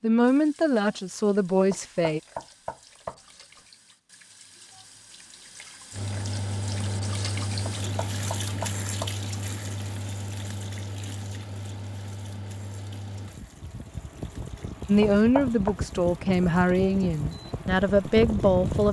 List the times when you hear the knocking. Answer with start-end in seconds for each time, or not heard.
1.7-3.2, 7.7-9.2, 15.0-15.8.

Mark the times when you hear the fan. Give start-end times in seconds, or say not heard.
5.9-18.8.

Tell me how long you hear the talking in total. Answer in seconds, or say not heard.
6 s.